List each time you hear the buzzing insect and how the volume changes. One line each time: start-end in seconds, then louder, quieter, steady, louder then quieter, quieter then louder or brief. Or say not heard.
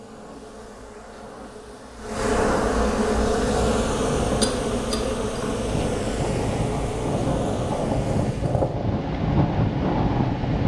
0.0-8.8 louder then quieter.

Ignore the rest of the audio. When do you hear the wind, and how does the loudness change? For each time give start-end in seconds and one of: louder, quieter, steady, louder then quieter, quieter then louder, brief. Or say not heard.
3.0-10.6 louder.